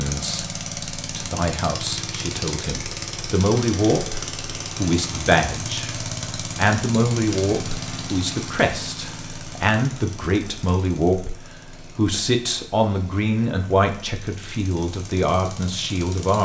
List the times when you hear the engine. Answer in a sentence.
You can hear the engine from 0.0 to 16.3 s.